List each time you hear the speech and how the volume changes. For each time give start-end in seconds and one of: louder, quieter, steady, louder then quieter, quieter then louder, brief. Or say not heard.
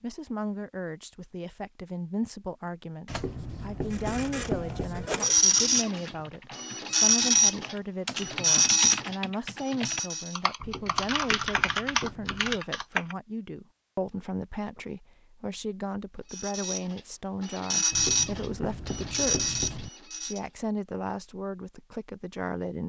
0.0-22.8 steady.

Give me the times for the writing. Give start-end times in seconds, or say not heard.
3.0-5.1, 10.6-12.6, 17.9-19.9.